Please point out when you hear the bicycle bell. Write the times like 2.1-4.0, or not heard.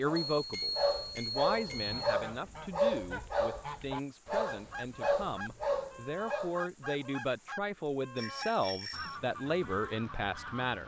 0.3-2.0, 8.2-9.2.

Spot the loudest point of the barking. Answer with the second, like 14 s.
3 s.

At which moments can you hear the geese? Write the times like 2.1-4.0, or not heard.
1.5-10.8.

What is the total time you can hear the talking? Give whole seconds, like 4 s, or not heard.
11 s.